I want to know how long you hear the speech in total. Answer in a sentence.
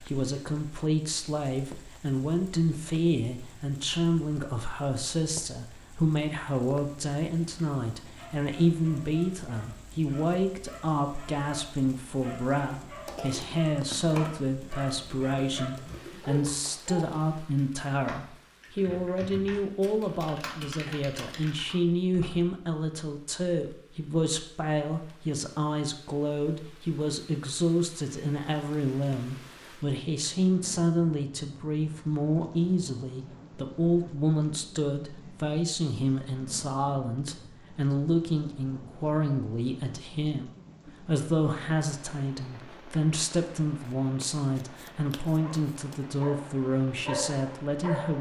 The speech can be heard for 48 seconds in total.